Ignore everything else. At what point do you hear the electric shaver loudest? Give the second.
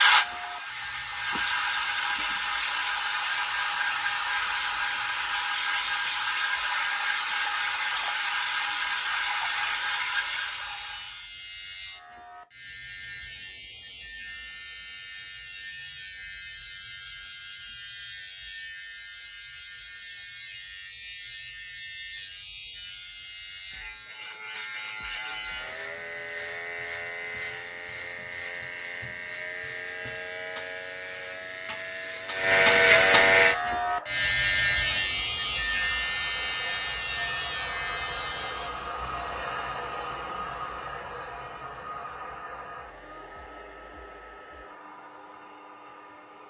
33 s.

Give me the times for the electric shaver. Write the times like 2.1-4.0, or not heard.
0.0-39.0.